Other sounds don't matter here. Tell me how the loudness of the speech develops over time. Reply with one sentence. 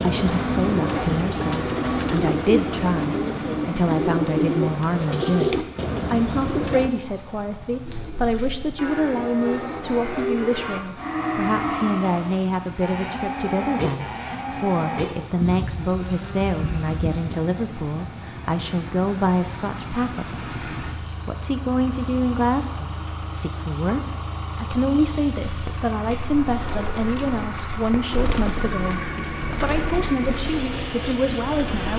The loudness of the speech stays about the same.